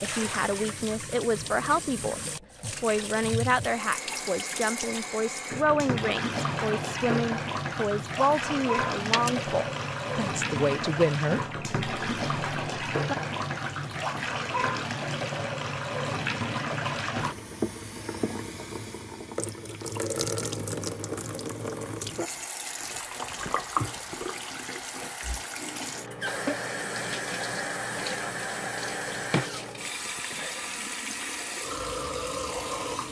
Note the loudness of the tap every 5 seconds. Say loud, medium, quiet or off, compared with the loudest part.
medium, loud, loud, loud, loud, loud, loud.